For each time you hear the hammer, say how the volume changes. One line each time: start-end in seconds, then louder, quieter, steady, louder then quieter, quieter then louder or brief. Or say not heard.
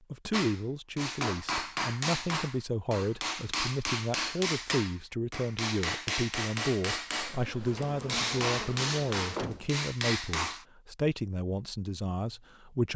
0.3-10.7 steady.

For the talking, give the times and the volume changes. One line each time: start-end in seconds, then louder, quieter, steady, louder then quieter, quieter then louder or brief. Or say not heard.
0.1-12.9 steady.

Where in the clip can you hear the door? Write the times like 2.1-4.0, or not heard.
9.3-9.8.